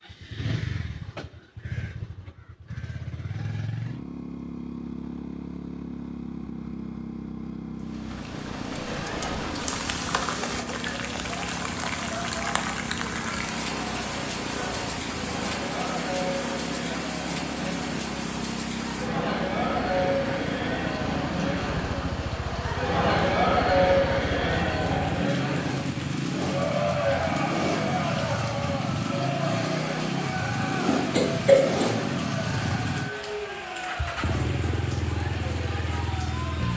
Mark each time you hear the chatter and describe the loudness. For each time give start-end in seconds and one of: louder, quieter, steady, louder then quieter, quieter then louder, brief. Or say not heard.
8.8-36.7 louder then quieter.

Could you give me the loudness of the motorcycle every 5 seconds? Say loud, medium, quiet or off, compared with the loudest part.
medium, medium, medium, medium, medium, loud, loud, loud.